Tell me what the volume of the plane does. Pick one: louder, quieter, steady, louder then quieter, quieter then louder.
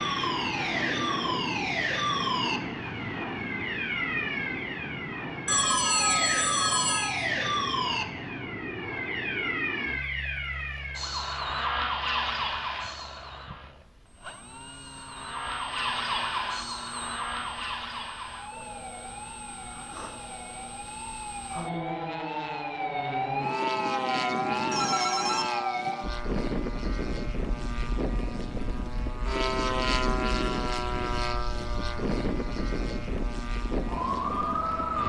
quieter then louder.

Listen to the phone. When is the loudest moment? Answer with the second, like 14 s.
6 s.